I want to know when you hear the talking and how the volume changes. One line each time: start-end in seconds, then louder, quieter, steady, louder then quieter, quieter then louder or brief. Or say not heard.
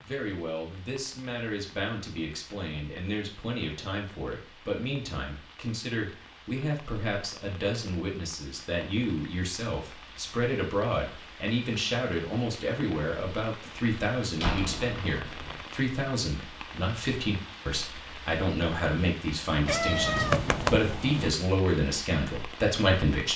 0.0-23.3 louder.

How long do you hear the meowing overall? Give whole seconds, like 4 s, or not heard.
2 s.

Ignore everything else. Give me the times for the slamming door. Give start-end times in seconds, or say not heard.
14.3-15.6.